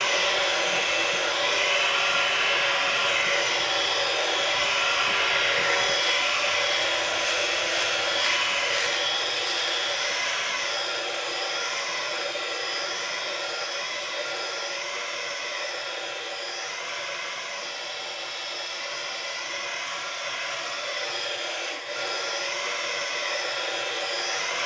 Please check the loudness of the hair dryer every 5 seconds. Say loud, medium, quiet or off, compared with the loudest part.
loud, loud, medium, medium, medium.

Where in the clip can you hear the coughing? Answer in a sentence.
The coughing can't be heard in this clip.